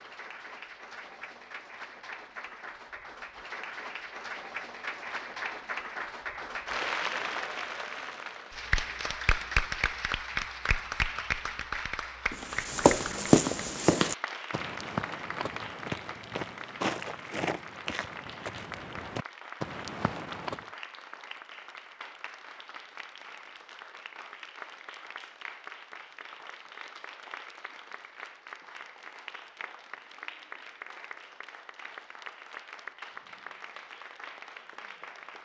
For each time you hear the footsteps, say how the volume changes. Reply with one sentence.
The footsteps can be heard from 12.3 to 20.6 s, getting quieter.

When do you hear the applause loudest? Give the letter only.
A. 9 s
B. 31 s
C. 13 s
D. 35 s
A.